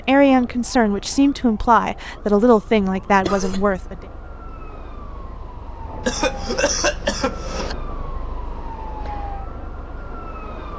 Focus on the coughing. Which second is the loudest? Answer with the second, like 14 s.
7 s.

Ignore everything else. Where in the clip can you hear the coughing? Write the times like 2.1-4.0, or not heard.
2.8-3.8, 6.0-7.8.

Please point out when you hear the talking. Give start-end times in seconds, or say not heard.
0.1-4.0.